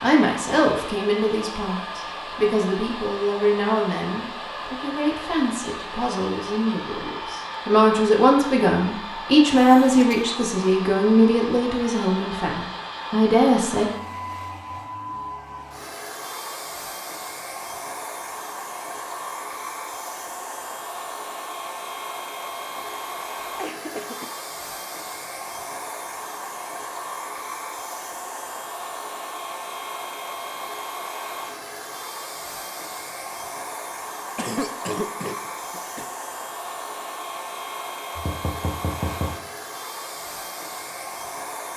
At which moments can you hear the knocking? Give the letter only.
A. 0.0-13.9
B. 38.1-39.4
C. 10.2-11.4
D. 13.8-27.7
B.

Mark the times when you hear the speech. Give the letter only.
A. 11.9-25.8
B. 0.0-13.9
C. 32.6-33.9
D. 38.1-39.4
B.